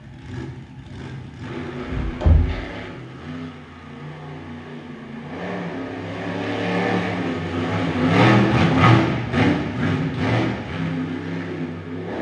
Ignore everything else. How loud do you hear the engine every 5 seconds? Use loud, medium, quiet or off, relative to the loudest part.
quiet, loud, medium.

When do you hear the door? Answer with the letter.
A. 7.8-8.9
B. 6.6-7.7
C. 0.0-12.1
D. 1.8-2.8
D.